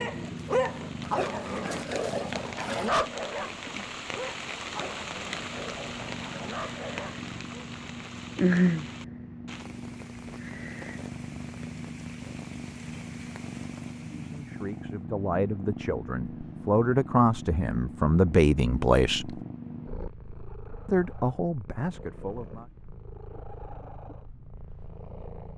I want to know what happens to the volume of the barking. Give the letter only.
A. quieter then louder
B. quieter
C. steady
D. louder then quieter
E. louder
B.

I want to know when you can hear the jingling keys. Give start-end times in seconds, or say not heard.
not heard.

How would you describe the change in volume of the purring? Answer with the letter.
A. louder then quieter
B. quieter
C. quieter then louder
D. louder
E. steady
A.